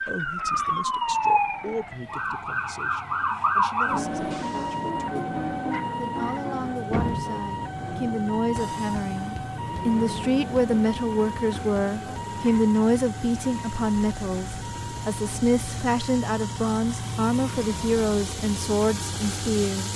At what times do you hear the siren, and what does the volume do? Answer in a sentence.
You can hear the siren from 0.0 to 19.9 s, getting quieter.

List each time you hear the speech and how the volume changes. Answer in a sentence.
The speech can be heard from 0.1 to 19.9 s, getting louder.